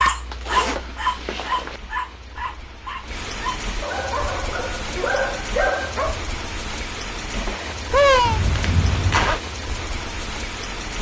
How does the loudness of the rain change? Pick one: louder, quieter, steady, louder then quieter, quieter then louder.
louder.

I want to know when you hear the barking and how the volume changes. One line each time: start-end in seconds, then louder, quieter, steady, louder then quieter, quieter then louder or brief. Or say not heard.
0.0-6.2 quieter then louder.